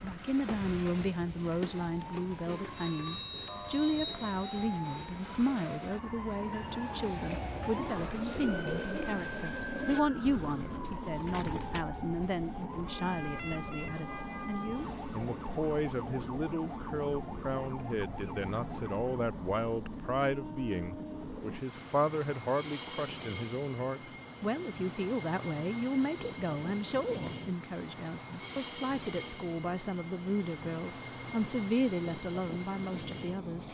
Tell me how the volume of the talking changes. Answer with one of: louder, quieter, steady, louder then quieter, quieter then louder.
steady.